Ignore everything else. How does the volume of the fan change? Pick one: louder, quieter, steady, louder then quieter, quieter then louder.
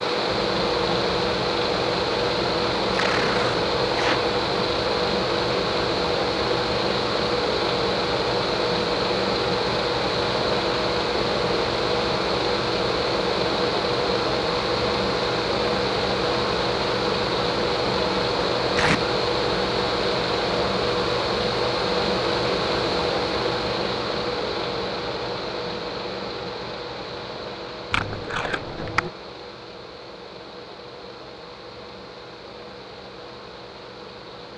quieter.